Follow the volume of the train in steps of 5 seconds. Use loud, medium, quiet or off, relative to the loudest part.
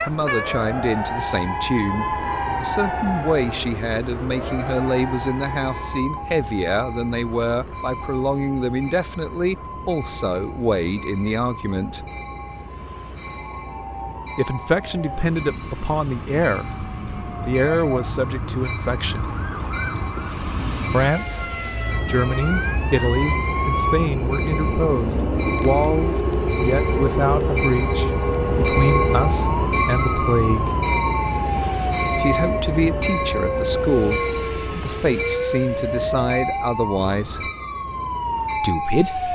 quiet, quiet, quiet, quiet, medium, loud, loud, medium.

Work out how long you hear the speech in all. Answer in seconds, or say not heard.
32 s.